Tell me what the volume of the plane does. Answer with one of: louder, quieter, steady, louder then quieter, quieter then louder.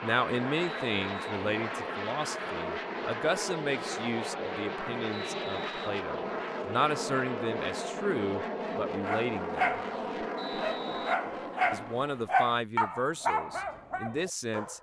steady.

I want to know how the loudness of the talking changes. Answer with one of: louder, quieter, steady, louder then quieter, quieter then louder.
steady.